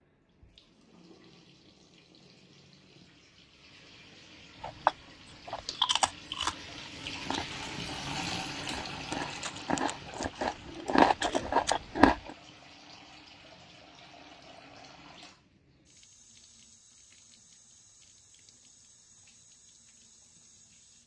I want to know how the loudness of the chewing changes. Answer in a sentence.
The loudness of the chewing goes down, then up.